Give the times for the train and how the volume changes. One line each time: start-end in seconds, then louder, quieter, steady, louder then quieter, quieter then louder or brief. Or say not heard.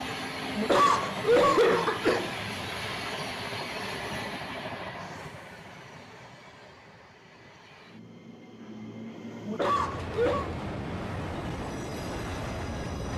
0.0-13.1 quieter then louder.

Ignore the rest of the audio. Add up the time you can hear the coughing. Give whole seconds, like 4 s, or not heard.
3 s.